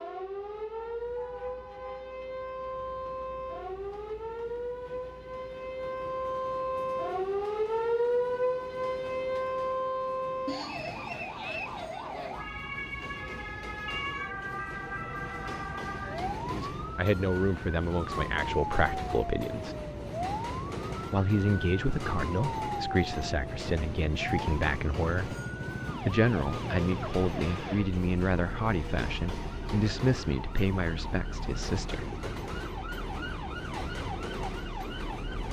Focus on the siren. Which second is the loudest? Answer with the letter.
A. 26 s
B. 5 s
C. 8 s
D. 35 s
C.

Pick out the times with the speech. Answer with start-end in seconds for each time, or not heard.
16.5-19.8, 21.1-25.4, 26.0-32.0.